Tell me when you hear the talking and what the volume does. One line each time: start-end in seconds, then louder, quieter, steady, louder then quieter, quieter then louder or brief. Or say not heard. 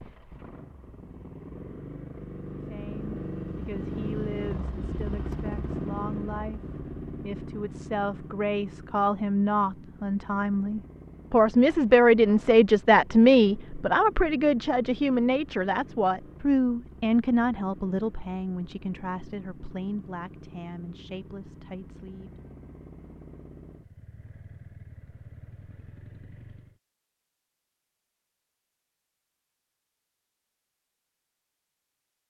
2.7-22.3 louder then quieter.